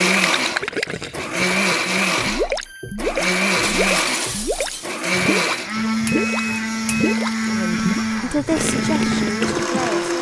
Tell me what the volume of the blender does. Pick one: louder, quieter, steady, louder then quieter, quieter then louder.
steady.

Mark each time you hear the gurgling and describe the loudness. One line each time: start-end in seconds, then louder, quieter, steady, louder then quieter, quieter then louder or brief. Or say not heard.
0.0-9.9 steady.